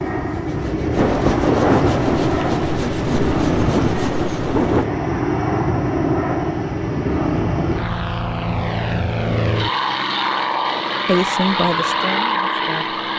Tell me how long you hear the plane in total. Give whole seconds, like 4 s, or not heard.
13 s.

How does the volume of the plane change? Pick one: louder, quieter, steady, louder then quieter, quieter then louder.
steady.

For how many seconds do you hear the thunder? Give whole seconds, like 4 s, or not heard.
4 s.